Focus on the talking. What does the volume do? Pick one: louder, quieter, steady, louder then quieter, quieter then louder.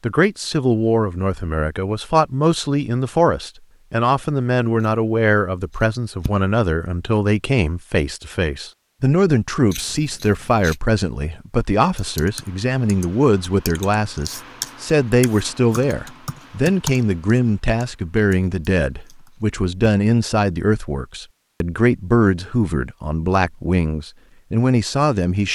steady.